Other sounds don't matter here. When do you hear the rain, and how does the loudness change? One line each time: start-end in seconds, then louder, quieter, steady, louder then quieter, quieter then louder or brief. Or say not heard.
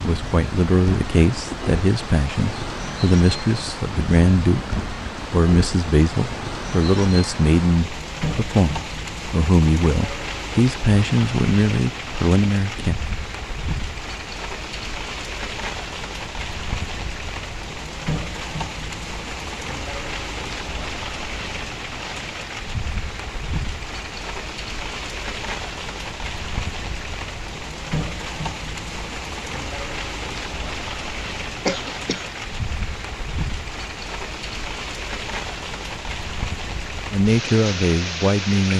0.0-38.7 steady.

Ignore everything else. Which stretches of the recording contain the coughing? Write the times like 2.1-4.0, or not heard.
31.6-32.2.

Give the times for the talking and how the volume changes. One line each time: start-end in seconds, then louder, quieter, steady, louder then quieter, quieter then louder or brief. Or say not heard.
0.0-12.9 steady
37.1-38.7 brief.